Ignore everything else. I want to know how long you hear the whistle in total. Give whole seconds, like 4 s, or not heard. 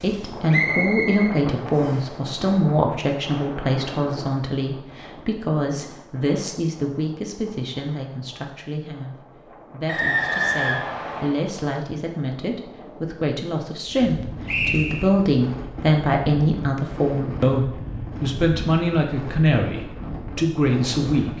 4 s.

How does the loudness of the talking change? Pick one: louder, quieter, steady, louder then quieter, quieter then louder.
quieter then louder.